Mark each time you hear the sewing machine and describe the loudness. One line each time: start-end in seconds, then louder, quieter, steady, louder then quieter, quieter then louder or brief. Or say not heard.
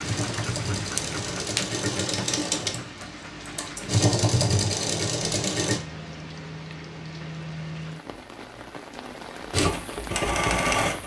0.0-5.8 louder
9.5-11.0 brief.